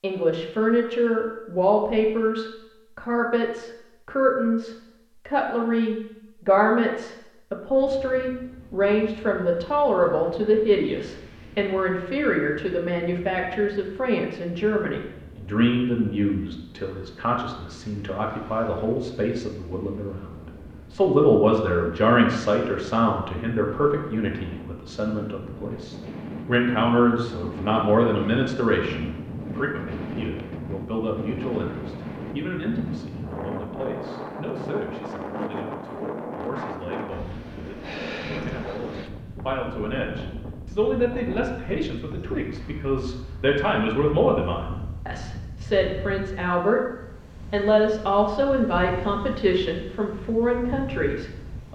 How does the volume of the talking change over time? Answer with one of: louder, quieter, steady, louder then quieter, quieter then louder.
quieter then louder.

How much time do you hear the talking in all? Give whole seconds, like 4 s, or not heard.
51 s.